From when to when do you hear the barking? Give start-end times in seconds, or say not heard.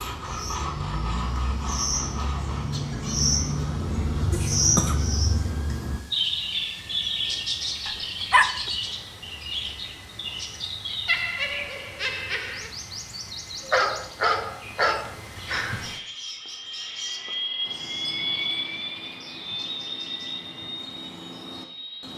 7.8-8.7, 13.6-15.2.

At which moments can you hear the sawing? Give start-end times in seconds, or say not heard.
0.0-2.6.